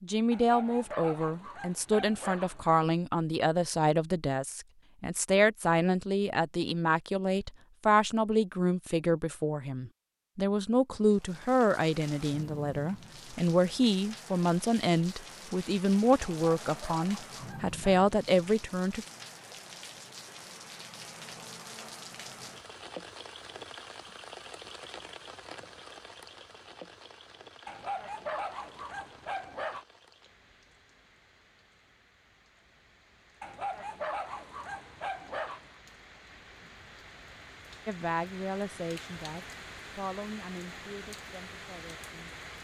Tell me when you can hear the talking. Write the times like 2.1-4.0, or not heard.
0.0-19.1, 37.9-42.4.